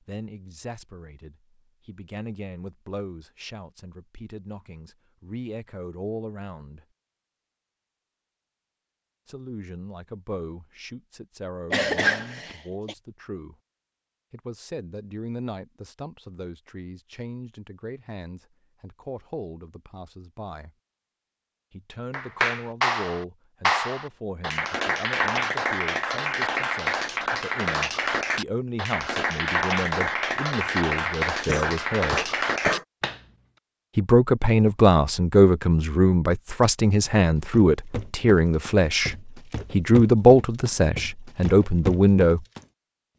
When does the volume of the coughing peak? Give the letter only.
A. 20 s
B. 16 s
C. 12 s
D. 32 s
C.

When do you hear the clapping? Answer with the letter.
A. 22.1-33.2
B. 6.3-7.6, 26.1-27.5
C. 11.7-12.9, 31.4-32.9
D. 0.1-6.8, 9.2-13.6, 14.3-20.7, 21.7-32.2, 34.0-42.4
A.